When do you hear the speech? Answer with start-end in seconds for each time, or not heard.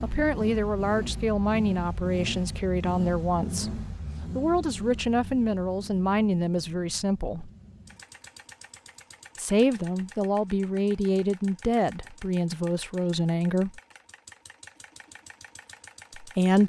0.0-7.5, 9.3-13.8, 16.1-16.6.